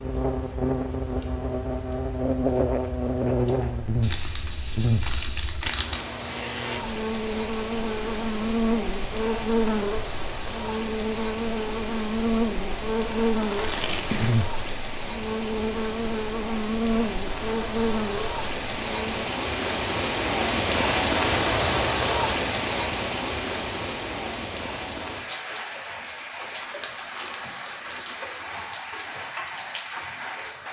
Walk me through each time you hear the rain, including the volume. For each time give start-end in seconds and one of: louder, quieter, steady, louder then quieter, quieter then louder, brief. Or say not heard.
0.0-30.6 louder then quieter.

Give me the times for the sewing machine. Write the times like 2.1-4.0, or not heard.
not heard.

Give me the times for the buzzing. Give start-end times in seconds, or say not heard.
0.0-19.1.